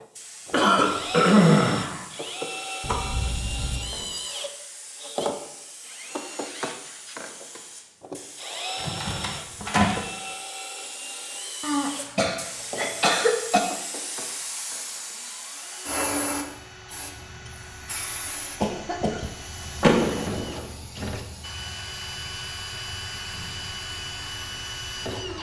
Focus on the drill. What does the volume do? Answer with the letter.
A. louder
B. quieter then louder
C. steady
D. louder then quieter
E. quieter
B.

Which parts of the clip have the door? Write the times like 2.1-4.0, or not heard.
2.8-4.1, 8.8-10.1, 19.8-20.6.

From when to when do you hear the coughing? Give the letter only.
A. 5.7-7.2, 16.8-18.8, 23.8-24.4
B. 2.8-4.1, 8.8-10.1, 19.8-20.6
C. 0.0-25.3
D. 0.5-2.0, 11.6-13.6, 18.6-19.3
D.